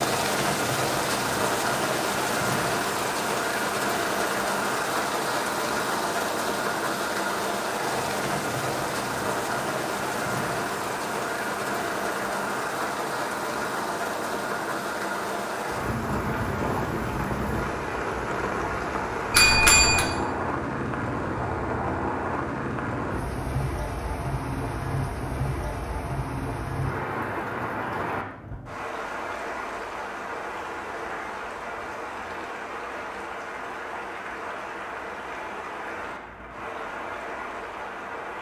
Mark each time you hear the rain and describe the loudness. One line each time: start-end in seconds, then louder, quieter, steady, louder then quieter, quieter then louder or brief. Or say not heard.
0.0-38.3 quieter.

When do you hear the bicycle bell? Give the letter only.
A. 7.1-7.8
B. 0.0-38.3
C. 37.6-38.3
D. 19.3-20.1
D.